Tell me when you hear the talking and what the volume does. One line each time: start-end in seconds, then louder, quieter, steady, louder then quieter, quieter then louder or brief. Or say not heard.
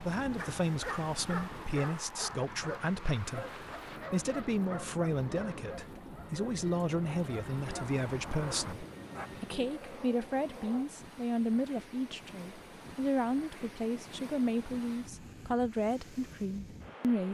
0.0-17.2 steady.